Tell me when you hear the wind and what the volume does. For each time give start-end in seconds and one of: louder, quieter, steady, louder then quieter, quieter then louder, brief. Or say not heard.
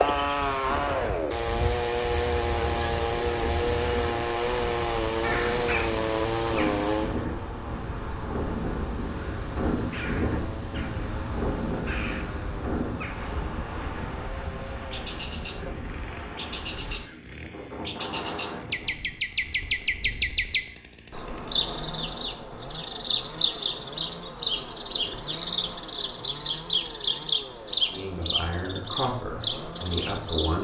0.2-20.6 louder then quieter.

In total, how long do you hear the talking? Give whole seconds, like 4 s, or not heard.
3 s.